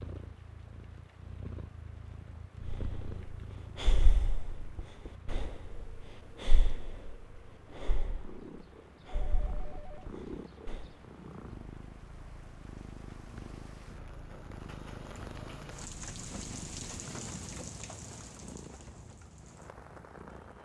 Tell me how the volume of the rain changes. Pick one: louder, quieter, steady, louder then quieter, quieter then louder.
louder.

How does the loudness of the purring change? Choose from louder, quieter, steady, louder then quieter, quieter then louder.
quieter then louder.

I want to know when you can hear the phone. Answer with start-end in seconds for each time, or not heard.
9.2-10.1.